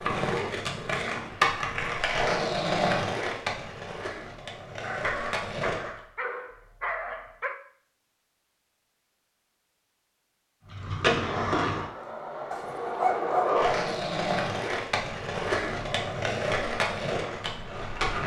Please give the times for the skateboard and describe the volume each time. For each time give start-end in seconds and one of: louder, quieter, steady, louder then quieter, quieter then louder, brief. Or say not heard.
0.0-5.9 louder then quieter
10.7-18.2 steady.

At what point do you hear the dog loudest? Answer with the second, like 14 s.
13 s.